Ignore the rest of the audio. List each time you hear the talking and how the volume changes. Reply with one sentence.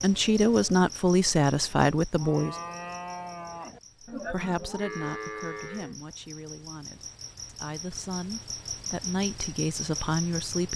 The talking can be heard briefly from 0.0 to 2.5 s; and from 4.1 to 10.7 s, getting quieter then louder.